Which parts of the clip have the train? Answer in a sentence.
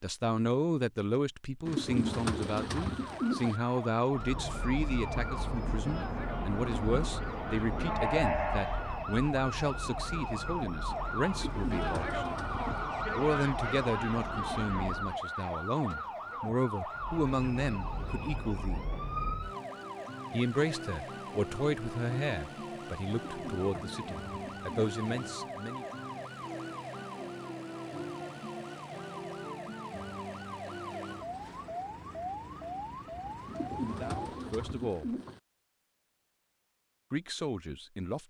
You can hear the train from 4.1 to 15.2 s and from 16.9 to 19.6 s.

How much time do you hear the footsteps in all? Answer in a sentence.
The footsteps can't be heard in this clip.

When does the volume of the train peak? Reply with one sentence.
The volume of the train peaks at 8 seconds.